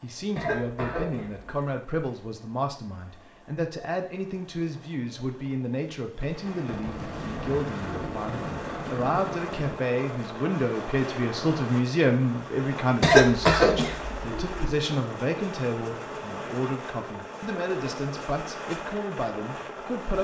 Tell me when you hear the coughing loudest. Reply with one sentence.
The loudest moment of the coughing is at 13 seconds.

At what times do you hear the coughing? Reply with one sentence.
You can hear the coughing from 0.3 to 1.5 s and from 13.0 to 14.8 s.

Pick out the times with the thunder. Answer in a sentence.
The thunder can be heard from 6.2 to 9.8 s.